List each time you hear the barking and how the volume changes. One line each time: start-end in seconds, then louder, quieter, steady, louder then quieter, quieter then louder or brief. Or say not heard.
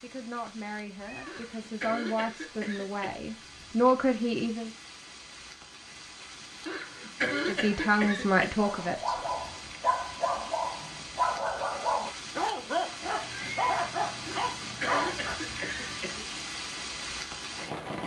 8.6-15.4 steady.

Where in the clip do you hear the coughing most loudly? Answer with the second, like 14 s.
7 s.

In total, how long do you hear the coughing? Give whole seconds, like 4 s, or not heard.
6 s.